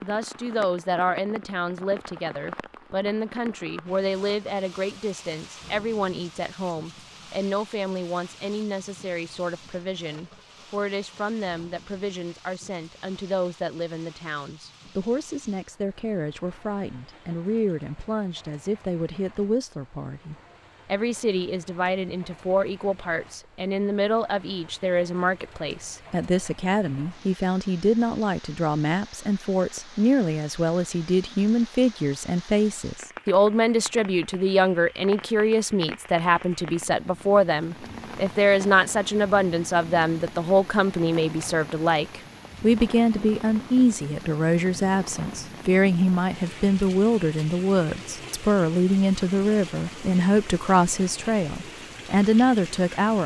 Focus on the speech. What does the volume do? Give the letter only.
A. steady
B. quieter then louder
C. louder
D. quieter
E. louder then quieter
C.